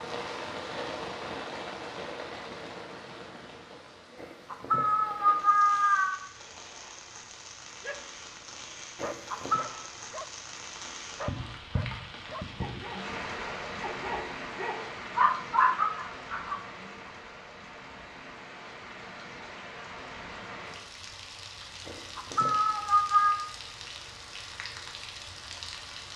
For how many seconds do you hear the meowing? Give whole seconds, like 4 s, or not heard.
4 s.